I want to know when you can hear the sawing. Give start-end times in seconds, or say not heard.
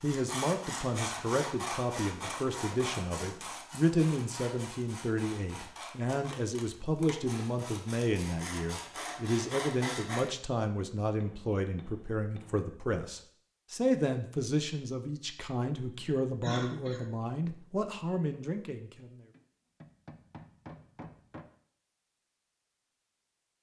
0.0-10.3.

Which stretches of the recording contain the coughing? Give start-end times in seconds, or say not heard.
16.4-17.1.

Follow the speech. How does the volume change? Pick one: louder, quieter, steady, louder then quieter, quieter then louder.
steady.